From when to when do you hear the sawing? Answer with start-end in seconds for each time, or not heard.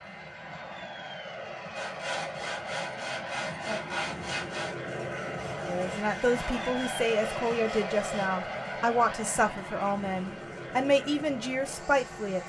1.8-8.3.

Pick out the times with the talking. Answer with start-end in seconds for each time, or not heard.
5.7-12.4.